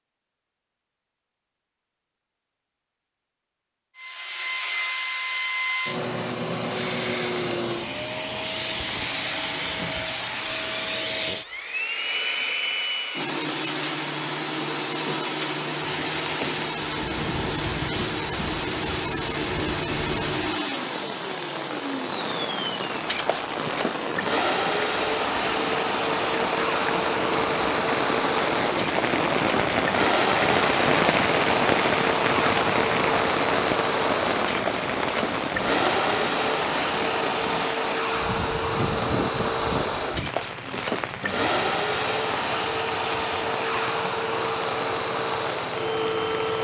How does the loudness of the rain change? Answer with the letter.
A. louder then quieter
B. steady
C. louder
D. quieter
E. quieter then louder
A.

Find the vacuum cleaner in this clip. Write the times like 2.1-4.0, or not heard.
4.0-46.5.